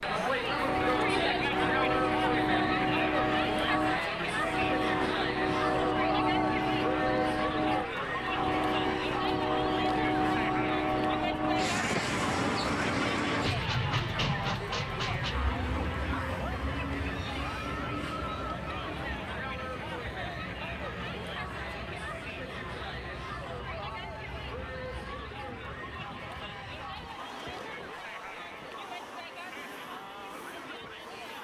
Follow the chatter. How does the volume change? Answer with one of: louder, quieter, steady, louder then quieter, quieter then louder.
quieter.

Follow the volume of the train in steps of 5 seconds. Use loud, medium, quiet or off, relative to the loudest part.
loud, loud, loud, medium, quiet, quiet, quiet.